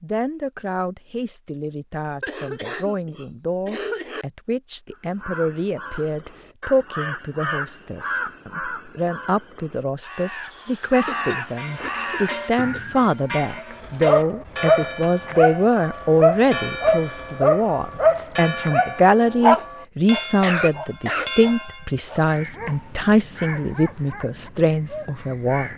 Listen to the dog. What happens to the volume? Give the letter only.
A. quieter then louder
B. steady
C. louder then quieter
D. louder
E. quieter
E.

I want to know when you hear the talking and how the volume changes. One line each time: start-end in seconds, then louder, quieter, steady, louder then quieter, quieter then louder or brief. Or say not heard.
0.0-25.7 louder.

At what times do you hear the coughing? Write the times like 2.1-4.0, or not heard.
2.2-4.2, 11.1-13.0, 20.4-22.0.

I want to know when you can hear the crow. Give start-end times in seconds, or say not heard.
4.9-13.1, 22.1-25.7.